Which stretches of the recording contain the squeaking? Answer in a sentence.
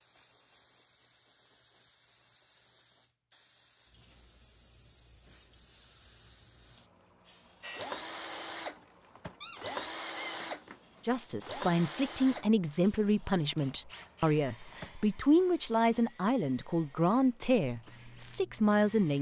You can hear the squeaking from 9.4 to 11.1 s.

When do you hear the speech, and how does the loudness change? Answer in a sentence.
The speech can be heard from 11.1 to 19.1 s, at a steady volume.